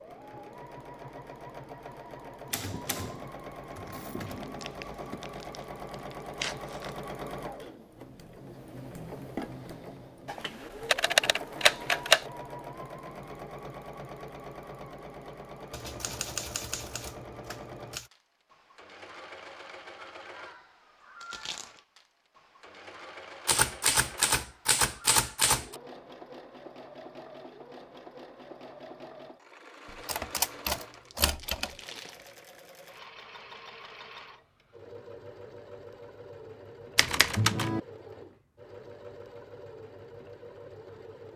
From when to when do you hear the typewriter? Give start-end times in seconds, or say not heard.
2.5-5.2, 10.2-12.2, 15.7-18.1, 23.4-25.8, 30.1-31.7, 37.0-37.8.